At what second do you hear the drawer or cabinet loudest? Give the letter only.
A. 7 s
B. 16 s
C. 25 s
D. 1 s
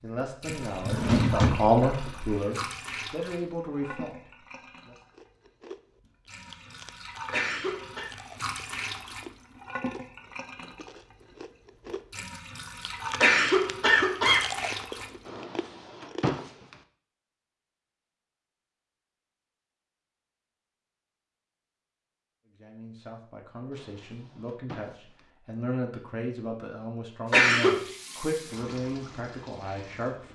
D.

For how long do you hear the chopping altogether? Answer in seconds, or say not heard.
not heard.